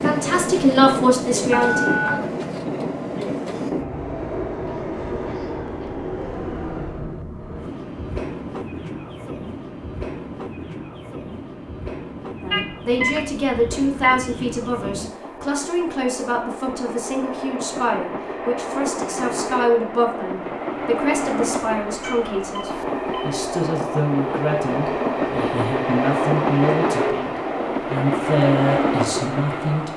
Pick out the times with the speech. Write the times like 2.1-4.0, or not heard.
0.0-1.9, 12.4-29.9.